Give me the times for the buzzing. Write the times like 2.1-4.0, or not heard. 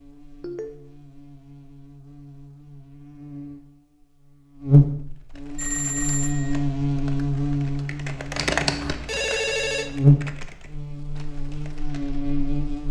0.0-12.8.